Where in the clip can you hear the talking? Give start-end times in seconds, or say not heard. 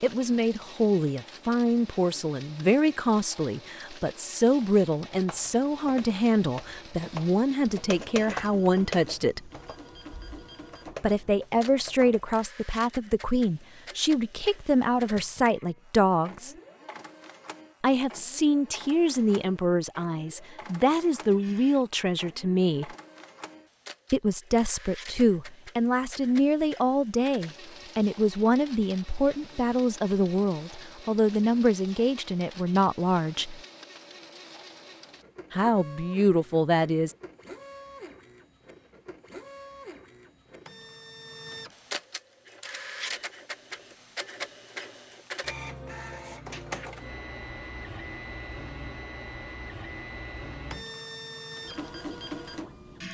0.0-9.5, 11.0-16.6, 17.8-22.9, 24.1-33.6, 35.5-37.1.